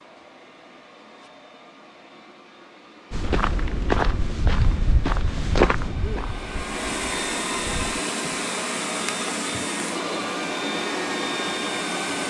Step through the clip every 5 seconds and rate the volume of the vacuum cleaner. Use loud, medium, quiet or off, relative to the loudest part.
quiet, loud, loud.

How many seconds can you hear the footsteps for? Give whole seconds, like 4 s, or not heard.
5 s.